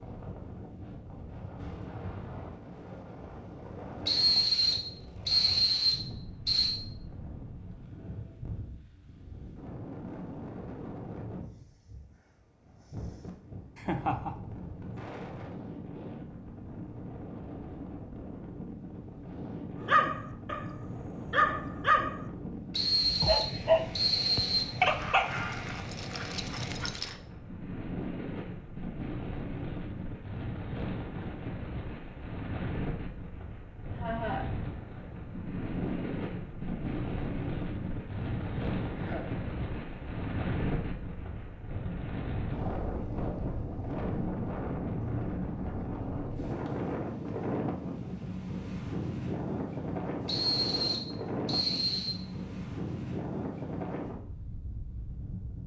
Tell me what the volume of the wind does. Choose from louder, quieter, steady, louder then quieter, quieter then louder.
louder.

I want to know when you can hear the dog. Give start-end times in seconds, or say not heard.
19.8-22.3, 23.0-27.1.